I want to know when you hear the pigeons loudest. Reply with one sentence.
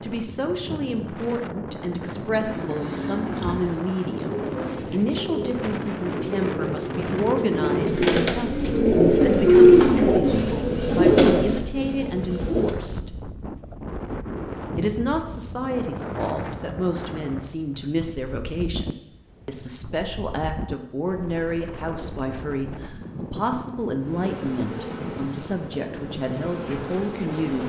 The volume of the pigeons peaks at 10 seconds.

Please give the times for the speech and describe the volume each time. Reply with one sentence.
You can hear the speech from 0.0 to 13.1 s, at a steady volume; and from 14.8 to 27.6 s, at a steady volume.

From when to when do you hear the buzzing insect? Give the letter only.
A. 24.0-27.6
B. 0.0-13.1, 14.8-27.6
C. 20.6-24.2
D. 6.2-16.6
A.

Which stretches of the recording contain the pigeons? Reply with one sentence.
You can hear the pigeons from 2.4 to 12.8 s.